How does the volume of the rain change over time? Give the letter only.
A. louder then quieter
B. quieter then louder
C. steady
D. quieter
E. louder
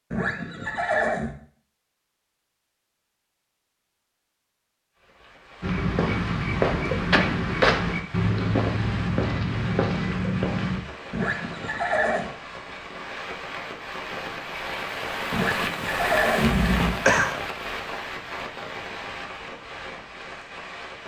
A.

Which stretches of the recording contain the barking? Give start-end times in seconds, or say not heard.
not heard.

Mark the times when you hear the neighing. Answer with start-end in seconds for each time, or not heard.
0.1-1.4, 11.1-12.2, 15.3-17.3.